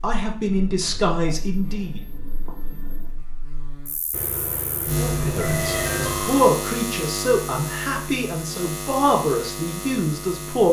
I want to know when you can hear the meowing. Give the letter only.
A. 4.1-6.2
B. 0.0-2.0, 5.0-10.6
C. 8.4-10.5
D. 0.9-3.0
A.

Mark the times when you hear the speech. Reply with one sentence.
You can hear the speech from 0.0 to 2.0 s and from 5.0 to 10.6 s.